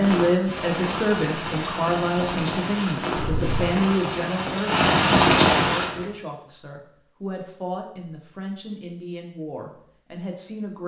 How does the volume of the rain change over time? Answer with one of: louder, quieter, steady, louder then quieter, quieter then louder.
louder.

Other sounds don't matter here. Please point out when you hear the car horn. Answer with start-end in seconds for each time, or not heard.
3.1-3.8.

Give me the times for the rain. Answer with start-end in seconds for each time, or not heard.
0.0-6.0.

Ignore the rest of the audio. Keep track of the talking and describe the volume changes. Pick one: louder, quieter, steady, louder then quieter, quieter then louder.
quieter.